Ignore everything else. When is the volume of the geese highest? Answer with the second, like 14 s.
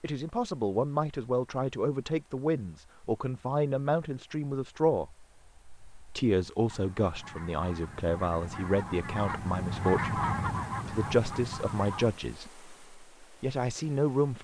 10 s.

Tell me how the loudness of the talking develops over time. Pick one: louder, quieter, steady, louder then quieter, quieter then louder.
steady.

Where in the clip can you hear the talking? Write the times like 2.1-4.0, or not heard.
0.0-5.2, 6.1-10.2, 10.8-14.3.